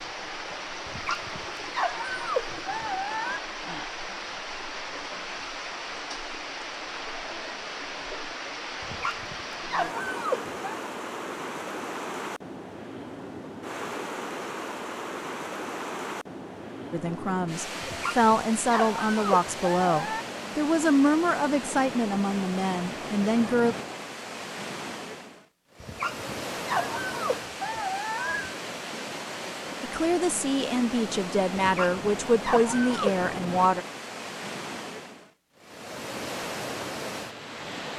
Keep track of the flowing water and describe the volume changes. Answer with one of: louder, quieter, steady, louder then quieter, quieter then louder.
steady.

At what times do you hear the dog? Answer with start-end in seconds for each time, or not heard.
0.8-3.4, 8.8-10.8, 17.8-20.2, 25.8-28.6, 31.6-33.2.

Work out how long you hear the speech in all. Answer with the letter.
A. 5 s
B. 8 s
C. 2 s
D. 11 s
D.